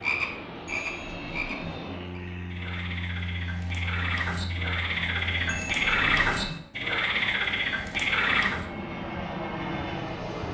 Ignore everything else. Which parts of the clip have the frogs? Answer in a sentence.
The frogs can be heard from 0.0 to 8.6 s.